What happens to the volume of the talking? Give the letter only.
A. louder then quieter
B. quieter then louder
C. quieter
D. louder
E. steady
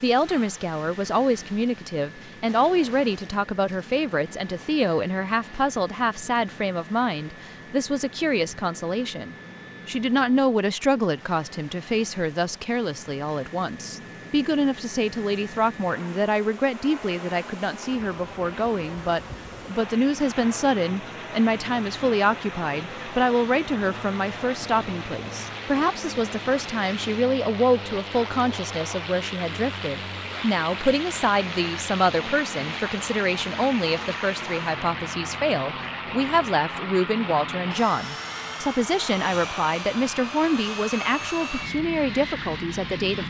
E.